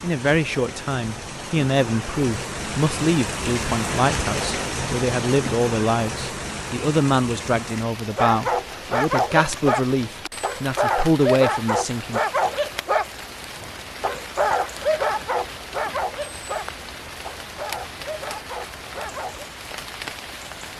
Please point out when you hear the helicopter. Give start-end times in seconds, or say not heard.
not heard.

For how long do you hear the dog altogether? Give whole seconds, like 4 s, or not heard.
11 s.